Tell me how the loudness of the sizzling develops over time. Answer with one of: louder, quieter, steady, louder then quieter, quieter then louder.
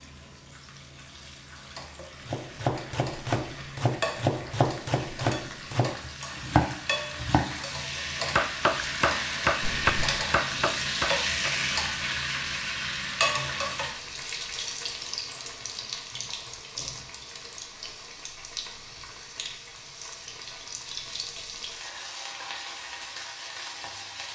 louder then quieter.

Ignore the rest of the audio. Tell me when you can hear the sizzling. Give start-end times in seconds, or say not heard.
0.0-24.3.